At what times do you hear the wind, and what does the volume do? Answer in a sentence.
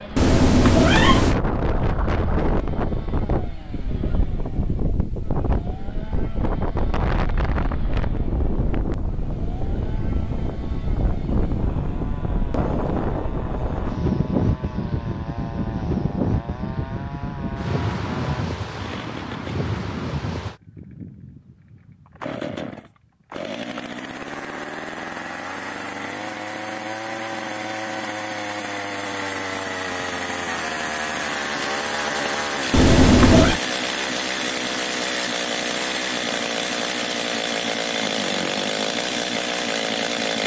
You can hear the wind from 0.0 to 20.6 s, at a steady volume.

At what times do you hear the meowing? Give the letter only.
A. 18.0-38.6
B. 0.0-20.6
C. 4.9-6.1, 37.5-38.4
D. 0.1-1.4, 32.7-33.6
D.